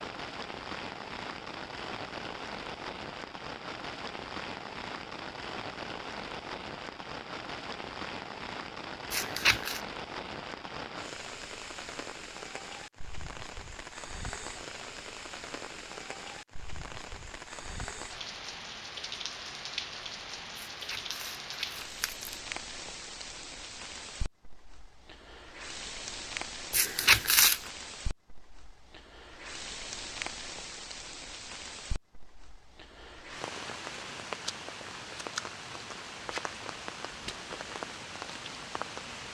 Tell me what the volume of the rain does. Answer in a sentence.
The loudness of the rain stays about the same.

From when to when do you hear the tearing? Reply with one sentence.
You can hear the tearing from 9.1 to 9.8 s, from 20.6 to 22.4 s and from 26.7 to 27.6 s.